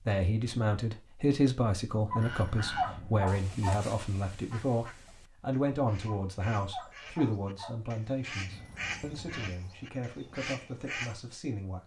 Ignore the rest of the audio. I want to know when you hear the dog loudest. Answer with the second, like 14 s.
3 s.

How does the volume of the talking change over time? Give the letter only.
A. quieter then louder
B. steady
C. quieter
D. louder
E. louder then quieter
C.